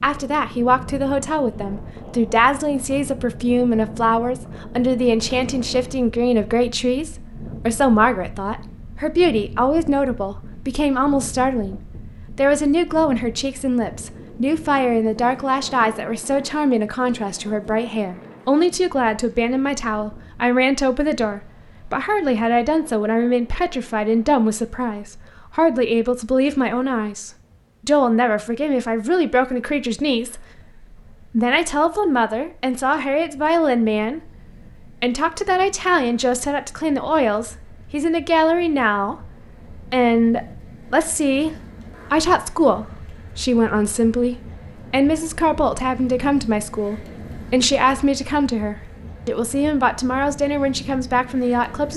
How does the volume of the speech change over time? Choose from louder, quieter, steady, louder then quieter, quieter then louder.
steady.